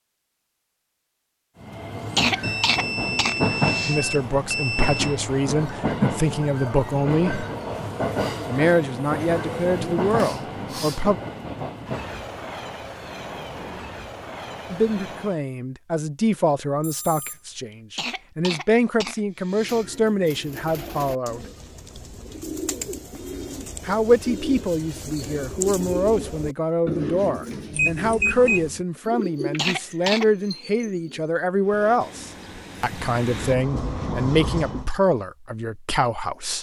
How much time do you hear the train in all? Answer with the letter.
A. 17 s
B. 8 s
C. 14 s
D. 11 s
A.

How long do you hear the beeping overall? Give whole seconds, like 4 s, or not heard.
5 s.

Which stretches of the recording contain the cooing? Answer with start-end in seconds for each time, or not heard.
19.4-31.4.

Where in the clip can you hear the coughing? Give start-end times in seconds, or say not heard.
2.1-4.0, 17.9-19.9, 29.6-30.2.